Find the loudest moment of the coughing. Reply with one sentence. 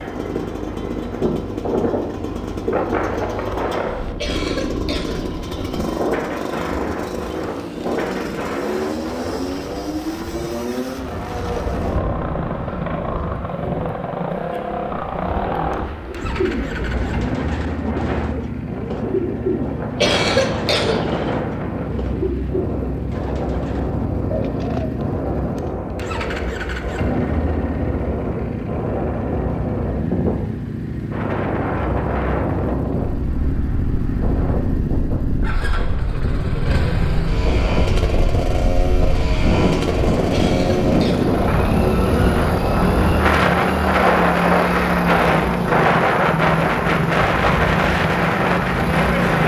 The loudest moment of the coughing is at 20 seconds.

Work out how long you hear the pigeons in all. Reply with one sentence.
You can hear the pigeons for 10 seconds altogether.